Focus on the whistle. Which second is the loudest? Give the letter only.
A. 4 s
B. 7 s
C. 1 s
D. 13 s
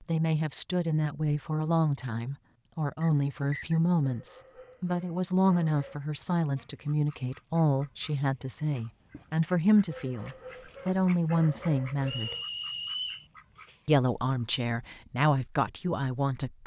D.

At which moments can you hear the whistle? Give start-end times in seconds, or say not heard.
3.0-3.8, 12.1-13.2.